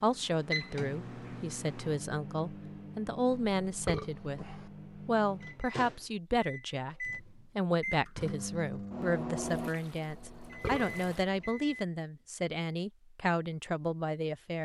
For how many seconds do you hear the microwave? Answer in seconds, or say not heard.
12 s.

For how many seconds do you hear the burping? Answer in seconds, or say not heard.
2 s.